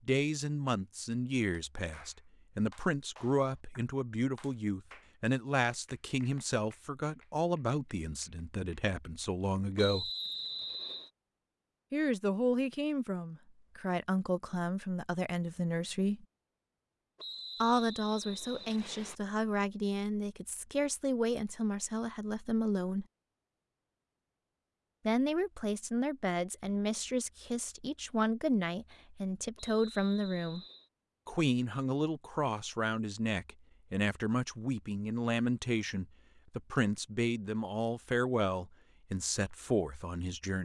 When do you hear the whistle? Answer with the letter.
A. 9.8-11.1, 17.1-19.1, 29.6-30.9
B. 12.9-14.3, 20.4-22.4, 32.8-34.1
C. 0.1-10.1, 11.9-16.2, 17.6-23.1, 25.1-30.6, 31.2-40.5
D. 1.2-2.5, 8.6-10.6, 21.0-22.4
A.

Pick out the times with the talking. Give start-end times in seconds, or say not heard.
0.1-10.1, 11.9-16.2, 17.6-23.1, 25.1-30.6, 31.2-40.5.